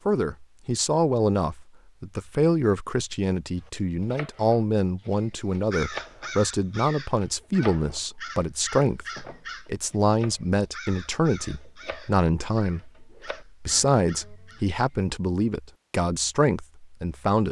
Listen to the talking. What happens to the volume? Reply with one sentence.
The volume of the talking stays about the same.